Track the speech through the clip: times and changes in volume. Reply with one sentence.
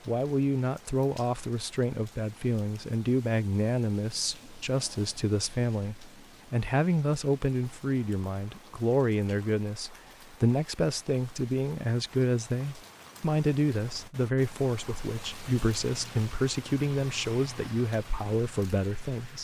The speech can be heard from 0.1 to 19.3 s, at a steady volume.